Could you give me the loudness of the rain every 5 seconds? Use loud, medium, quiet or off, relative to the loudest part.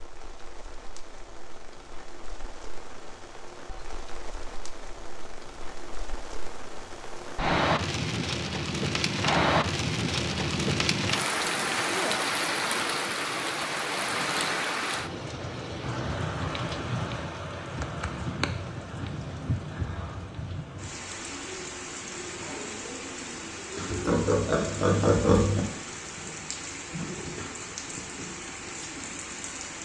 quiet, loud, loud, medium, medium, medium.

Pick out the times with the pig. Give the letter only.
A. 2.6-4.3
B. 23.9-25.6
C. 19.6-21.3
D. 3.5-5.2
B.